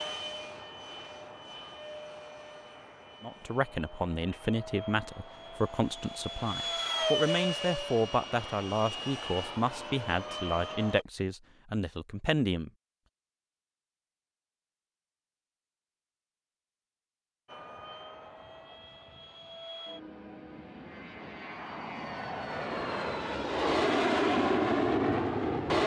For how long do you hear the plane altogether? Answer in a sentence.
You can hear the plane for 19 seconds altogether.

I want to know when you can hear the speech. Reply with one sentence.
You can hear the speech from 3.2 to 12.7 s.